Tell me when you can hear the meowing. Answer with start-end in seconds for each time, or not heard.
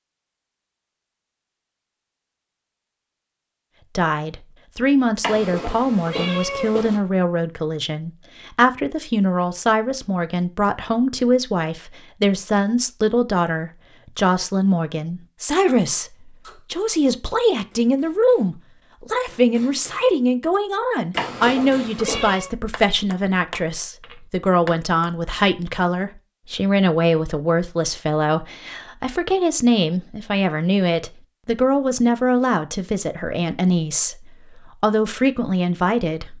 5.2-7.0, 21.1-22.5.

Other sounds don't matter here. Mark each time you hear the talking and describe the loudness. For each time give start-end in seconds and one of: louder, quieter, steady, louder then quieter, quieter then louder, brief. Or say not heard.
4.0-36.3 steady.